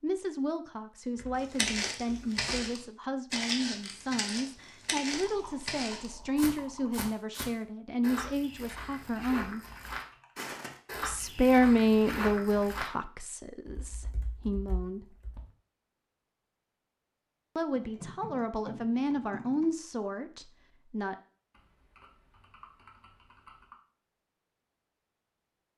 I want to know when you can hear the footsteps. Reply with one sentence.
The footsteps can be heard from 1.4 to 12.9 s.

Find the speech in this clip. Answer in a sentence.
The speech can be heard from 0.0 to 9.6 s, from 11.1 to 15.1 s and from 17.6 to 21.1 s.